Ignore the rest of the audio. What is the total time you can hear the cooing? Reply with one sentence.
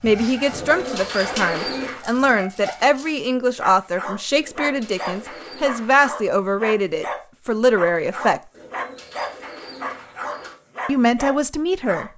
The cooing can be heard for 5 seconds in total.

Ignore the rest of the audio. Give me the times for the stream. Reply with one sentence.
You can't hear the stream here.